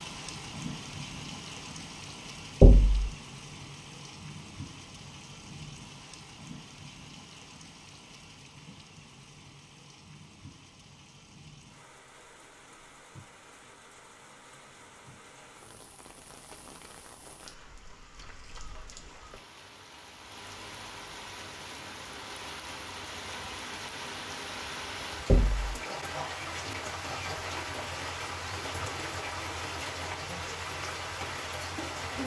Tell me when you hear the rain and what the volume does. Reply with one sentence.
You can hear the rain from 0.0 to 32.2 s, getting quieter then louder.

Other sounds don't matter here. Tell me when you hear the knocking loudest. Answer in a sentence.
The volume of the knocking peaks at 3 seconds.